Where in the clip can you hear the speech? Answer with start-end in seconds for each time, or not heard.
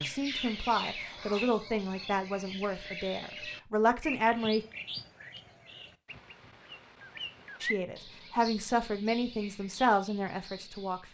0.0-4.7, 7.6-11.0.